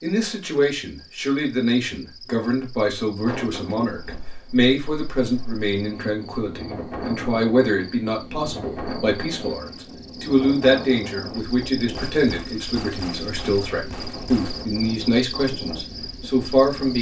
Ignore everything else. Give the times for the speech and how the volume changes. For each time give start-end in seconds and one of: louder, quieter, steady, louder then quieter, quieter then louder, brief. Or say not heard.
0.0-16.9 steady.